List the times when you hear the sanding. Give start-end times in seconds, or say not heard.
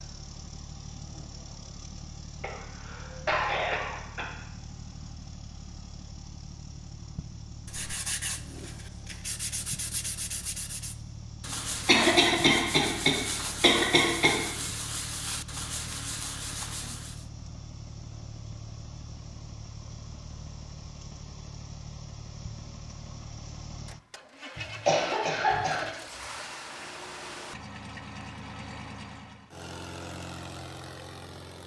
7.7-17.2.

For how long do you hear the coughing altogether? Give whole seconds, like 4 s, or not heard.
6 s.